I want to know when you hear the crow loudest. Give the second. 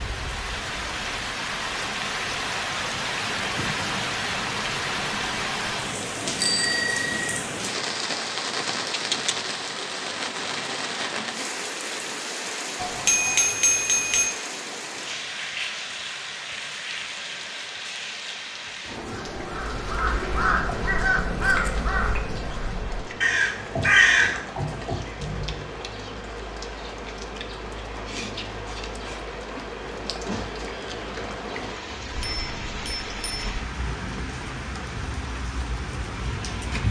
24 s.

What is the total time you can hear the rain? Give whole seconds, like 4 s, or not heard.
37 s.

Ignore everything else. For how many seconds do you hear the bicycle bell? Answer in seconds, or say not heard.
4 s.